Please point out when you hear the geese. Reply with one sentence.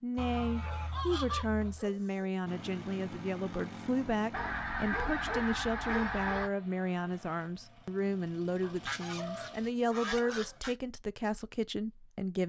You can hear the geese from 0.1 to 1.9 s, from 4.3 to 6.5 s and from 8.8 to 10.8 s.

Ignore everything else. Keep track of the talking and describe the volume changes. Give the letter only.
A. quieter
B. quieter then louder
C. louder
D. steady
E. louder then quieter
D.